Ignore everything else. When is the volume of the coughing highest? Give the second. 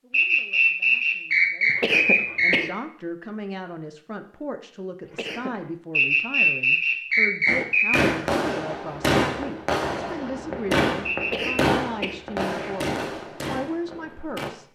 2 s.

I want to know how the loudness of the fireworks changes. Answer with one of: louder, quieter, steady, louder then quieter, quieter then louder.
quieter.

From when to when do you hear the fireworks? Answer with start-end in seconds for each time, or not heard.
7.5-14.5.